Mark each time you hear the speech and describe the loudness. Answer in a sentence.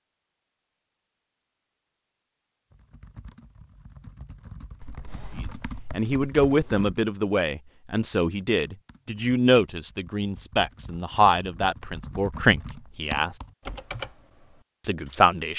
The speech can be heard from 5.9 to 13.4 s, at a steady volume; and briefly from 14.8 to 15.5 s.